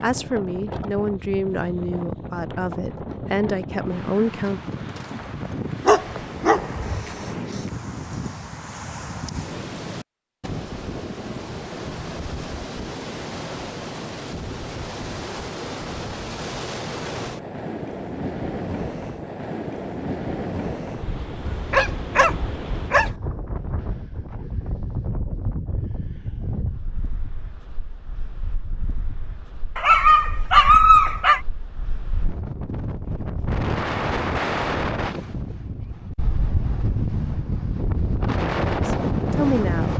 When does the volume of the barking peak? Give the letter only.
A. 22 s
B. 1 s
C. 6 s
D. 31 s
D.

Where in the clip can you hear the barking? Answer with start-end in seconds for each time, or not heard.
5.1-7.0, 21.4-23.1, 29.8-31.4.